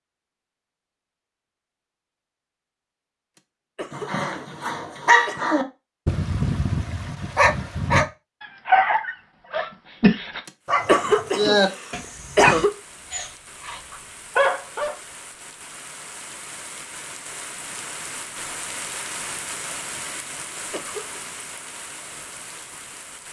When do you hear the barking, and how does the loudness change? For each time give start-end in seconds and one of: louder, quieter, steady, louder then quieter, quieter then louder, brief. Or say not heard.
3.9-14.9 steady.